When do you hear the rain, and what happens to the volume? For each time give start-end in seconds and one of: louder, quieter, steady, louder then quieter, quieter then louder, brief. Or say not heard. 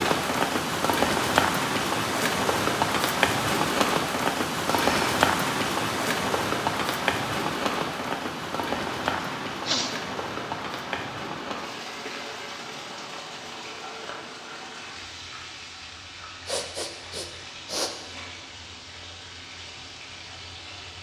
0.0-20.9 quieter.